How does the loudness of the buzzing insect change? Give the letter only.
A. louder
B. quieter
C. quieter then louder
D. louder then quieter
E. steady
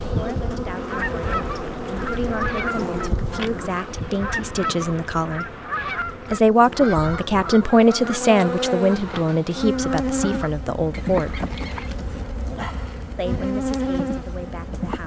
C.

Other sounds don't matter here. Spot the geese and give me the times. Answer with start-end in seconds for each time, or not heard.
0.7-11.9.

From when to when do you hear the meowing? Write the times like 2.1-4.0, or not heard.
not heard.